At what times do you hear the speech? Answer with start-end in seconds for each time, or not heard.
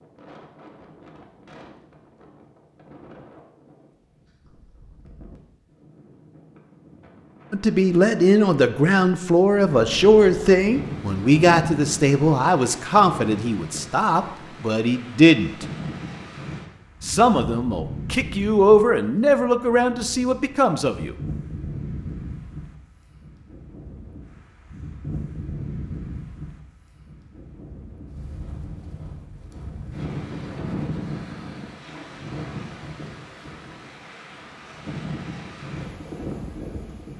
7.5-15.7, 17.0-21.1.